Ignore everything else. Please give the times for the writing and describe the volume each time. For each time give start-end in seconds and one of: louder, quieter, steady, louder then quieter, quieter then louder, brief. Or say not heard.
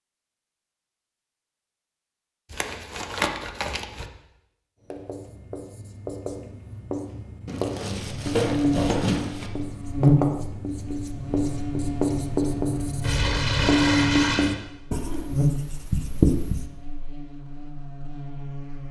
4.9-16.6 louder.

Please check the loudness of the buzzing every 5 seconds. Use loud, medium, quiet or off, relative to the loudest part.
off, loud, loud, medium.